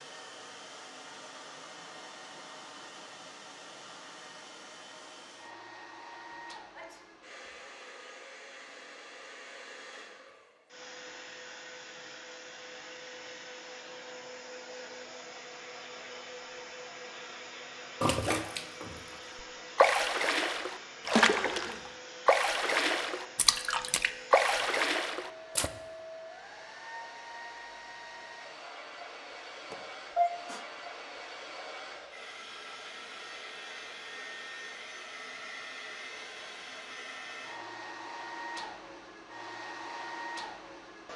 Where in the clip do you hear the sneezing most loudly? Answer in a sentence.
The loudest moment of the sneezing is at 30 seconds.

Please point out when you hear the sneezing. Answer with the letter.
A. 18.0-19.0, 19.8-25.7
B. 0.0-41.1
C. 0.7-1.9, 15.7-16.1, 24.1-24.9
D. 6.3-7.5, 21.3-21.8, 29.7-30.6
D.